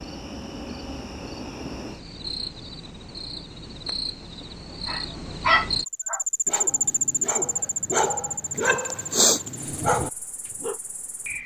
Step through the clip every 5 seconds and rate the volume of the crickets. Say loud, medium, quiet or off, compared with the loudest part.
medium, loud, quiet.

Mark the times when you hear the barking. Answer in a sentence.
The barking can be heard from 4.8 to 10.8 s.